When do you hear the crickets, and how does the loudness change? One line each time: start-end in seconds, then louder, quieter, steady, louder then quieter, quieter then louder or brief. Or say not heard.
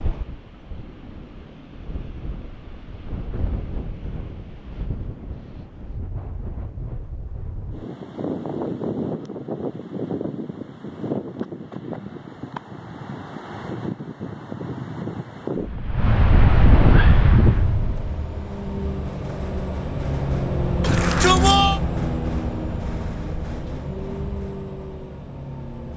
not heard.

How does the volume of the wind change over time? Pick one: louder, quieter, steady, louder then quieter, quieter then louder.
louder.